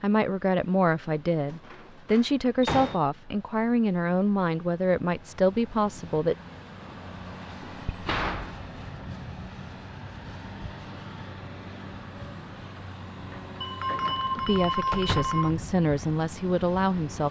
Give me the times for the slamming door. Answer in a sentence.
You can hear the slamming door from 1.4 to 3.0 s, from 7.8 to 8.6 s and from 14.9 to 15.4 s.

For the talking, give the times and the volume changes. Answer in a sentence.
You can hear the talking from 0.0 to 6.3 s, at a steady volume; and briefly from 14.3 to 17.2 s.